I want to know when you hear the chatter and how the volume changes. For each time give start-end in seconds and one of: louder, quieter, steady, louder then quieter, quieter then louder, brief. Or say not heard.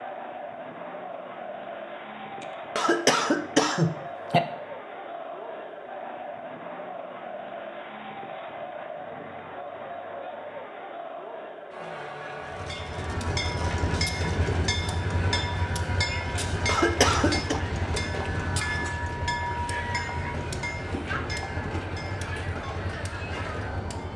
0.0-24.1 steady.